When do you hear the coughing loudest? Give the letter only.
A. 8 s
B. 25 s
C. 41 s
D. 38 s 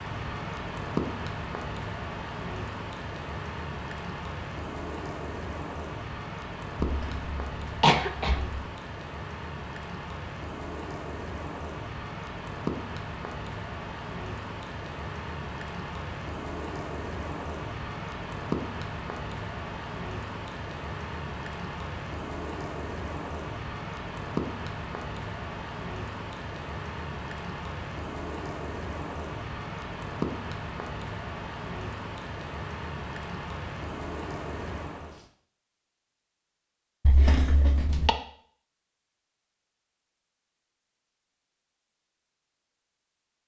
A.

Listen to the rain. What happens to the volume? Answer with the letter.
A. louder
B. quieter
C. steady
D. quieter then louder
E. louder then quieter
C.